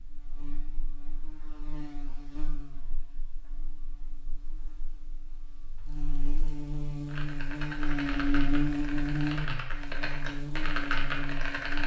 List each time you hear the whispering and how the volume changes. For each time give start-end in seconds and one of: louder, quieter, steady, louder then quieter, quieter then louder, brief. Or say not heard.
not heard.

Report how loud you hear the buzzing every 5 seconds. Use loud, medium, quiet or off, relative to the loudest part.
quiet, loud, medium.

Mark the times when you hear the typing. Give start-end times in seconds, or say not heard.
7.0-11.8.